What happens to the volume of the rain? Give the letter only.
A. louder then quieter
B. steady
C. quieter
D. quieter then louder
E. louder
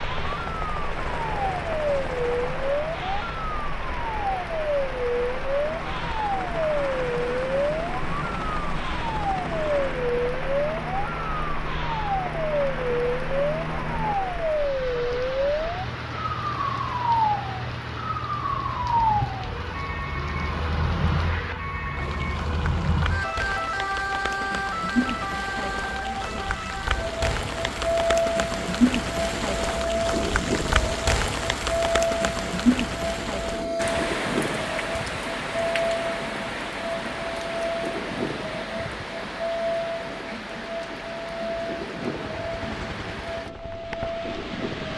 A.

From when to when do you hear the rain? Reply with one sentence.
The rain can be heard from 0.0 to 44.9 s.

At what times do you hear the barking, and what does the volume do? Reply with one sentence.
The barking can't be heard in this clip.